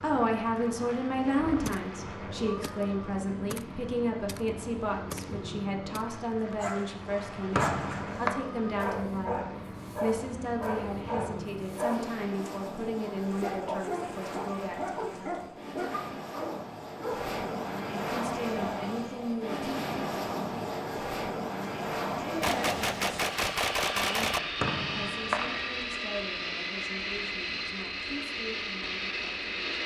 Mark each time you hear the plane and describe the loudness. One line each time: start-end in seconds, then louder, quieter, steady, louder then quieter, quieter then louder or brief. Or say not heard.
0.0-29.8 louder.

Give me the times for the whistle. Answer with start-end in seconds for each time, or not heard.
7.5-8.3, 24.6-25.7.